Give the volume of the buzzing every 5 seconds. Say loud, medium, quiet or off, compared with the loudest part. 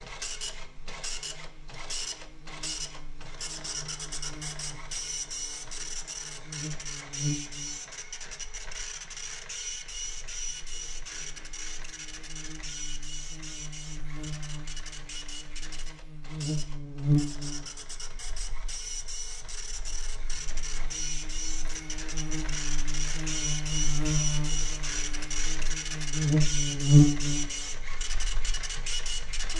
quiet, quiet, quiet, medium, medium, loud.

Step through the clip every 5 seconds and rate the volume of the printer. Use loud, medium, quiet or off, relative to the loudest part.
loud, loud, medium, medium, loud, loud.